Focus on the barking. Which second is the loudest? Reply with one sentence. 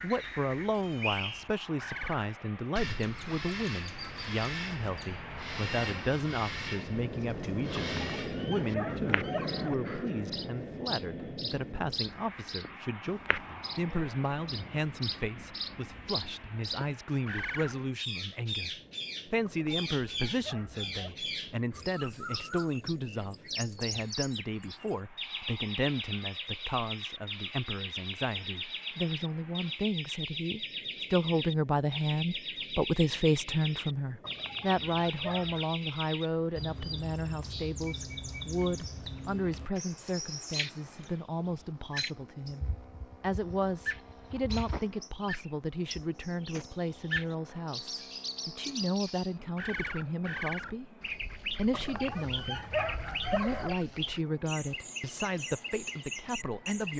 The loudest moment of the barking is at 53 seconds.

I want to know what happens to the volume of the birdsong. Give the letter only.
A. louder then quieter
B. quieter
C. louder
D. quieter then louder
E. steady
E.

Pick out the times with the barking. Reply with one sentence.
The barking can be heard from 7.8 to 9.8 s, from 19.4 to 21.1 s, from 34.2 to 35.7 s and from 51.7 to 53.8 s.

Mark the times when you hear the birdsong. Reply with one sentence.
The birdsong can be heard from 0.0 to 56.9 s.